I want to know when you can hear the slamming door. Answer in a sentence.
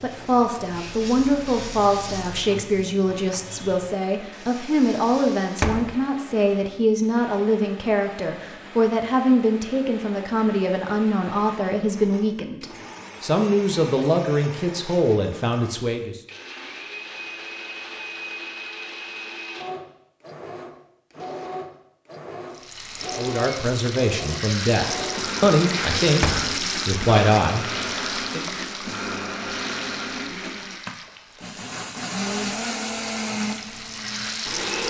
You can hear the slamming door from 5.5 to 6.0 s and from 26.1 to 26.6 s.